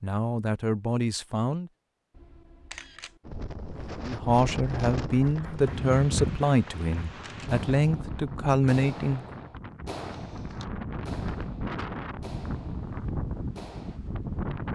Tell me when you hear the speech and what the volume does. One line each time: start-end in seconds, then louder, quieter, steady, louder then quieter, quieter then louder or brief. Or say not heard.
0.0-1.7 brief
4.0-9.4 steady.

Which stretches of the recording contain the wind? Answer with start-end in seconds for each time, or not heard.
3.2-14.7.